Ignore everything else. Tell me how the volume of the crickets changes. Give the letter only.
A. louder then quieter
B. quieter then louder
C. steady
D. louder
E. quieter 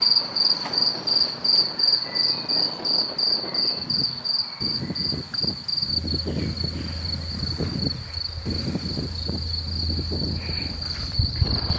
E.